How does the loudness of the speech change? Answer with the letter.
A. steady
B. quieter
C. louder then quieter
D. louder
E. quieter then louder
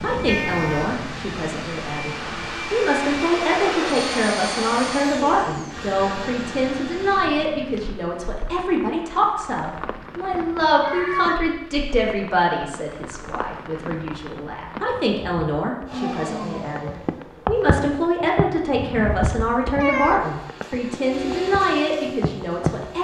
A.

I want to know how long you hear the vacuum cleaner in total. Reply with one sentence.
The vacuum cleaner can be heard for 12 seconds in total.